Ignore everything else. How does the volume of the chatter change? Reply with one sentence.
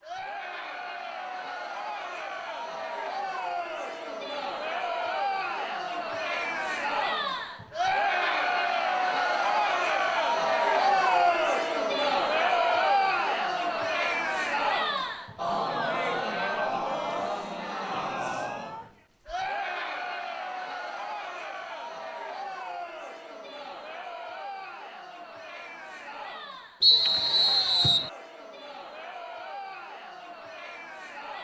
The loudness of the chatter goes up, then down.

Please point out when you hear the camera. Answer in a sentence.
The camera can't be heard in this clip.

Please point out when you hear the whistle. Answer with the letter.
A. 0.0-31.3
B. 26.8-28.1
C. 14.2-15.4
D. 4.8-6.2
B.